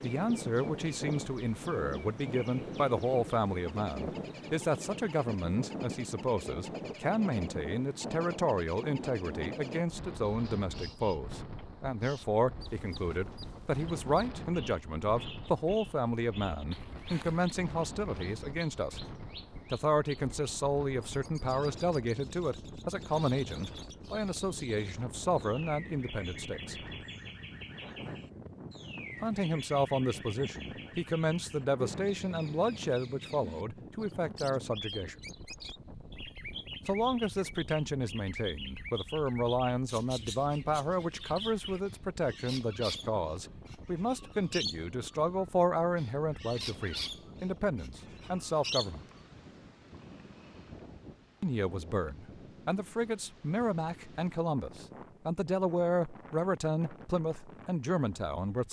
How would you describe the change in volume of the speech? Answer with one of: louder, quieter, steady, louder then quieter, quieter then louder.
steady.